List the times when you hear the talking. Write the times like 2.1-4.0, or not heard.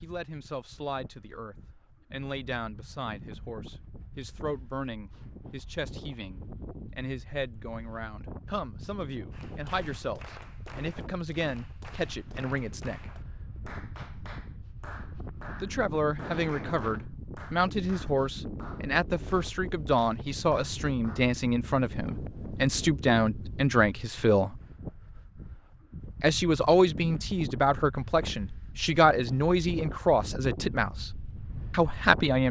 0.0-13.1, 15.6-24.6, 26.2-31.1, 31.7-32.4.